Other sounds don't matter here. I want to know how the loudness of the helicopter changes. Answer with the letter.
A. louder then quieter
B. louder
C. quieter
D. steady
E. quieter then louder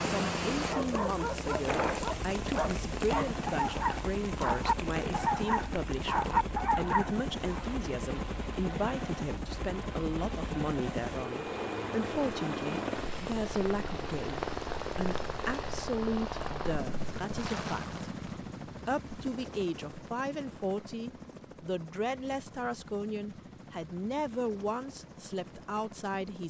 C.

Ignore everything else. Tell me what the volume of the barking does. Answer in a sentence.
The volume of the barking goes up.